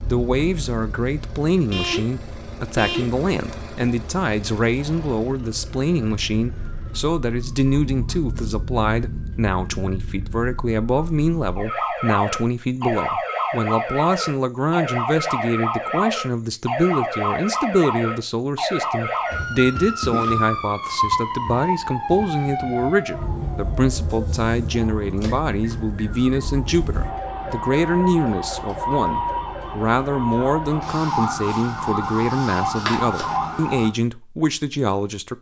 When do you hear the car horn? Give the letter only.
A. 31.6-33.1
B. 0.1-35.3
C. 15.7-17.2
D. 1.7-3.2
D.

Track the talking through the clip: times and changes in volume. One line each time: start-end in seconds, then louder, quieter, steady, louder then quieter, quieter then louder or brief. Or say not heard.
0.1-35.3 steady.